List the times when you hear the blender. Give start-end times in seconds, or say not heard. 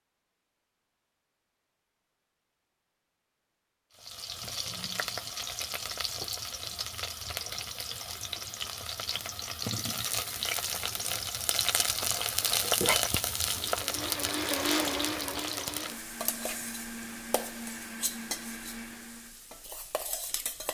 13.7-19.4.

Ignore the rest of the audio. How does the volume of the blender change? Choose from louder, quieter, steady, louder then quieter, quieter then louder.
quieter.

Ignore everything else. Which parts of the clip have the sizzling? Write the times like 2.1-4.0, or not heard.
4.0-20.6.